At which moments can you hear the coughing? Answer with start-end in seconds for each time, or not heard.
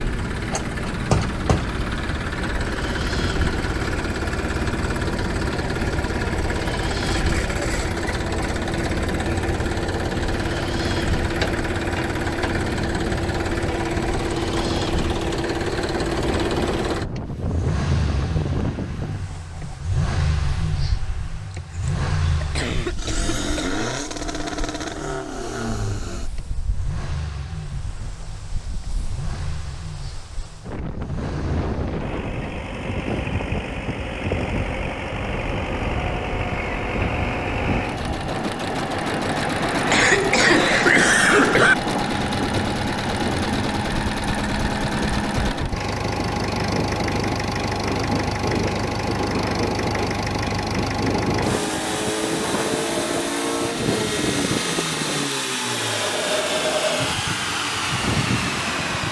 21.6-23.7, 39.9-41.8.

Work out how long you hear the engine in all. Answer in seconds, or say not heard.
59 s.